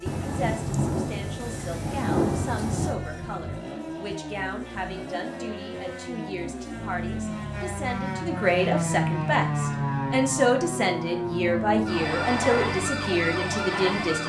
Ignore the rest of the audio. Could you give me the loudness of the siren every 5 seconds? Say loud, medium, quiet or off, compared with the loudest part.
quiet, loud, loud.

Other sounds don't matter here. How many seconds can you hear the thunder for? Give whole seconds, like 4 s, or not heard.
3 s.